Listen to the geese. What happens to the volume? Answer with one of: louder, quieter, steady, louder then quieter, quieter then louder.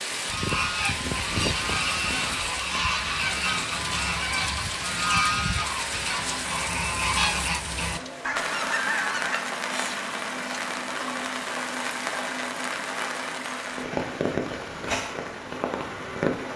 steady.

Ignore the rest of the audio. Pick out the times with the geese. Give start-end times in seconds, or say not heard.
0.2-9.4.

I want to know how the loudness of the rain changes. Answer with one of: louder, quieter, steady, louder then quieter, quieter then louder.
steady.